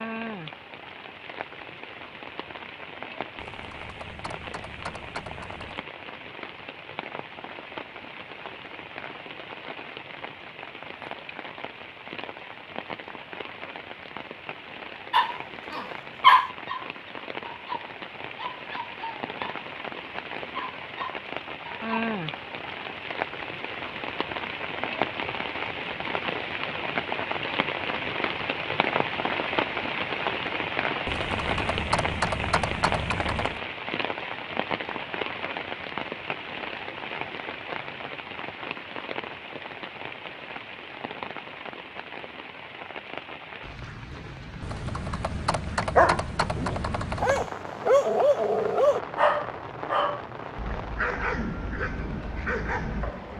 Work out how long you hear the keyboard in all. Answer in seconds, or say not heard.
8 s.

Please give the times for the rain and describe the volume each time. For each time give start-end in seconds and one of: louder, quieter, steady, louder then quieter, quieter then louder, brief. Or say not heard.
0.0-53.3 louder then quieter.